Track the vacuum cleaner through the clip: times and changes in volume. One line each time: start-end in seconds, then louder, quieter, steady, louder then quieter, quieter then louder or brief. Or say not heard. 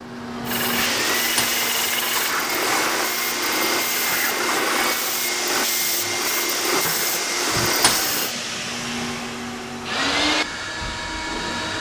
0.0-11.7 steady.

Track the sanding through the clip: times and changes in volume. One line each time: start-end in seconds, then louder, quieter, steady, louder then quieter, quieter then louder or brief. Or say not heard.
0.5-8.3 steady.